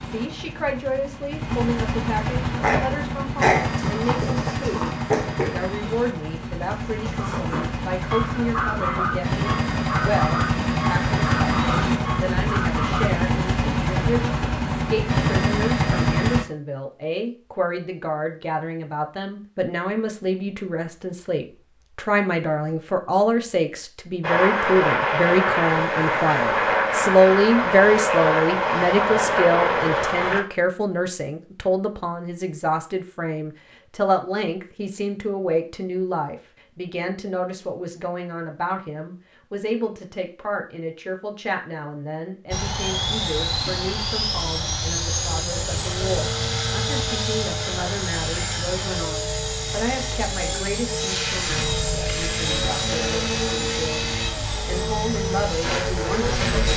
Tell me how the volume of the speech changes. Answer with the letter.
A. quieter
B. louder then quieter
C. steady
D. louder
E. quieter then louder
B.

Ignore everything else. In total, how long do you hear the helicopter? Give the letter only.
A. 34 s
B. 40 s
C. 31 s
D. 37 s
D.